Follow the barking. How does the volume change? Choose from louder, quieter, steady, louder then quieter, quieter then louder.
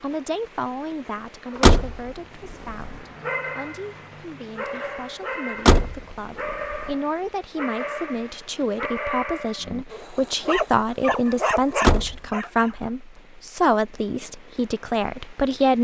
louder.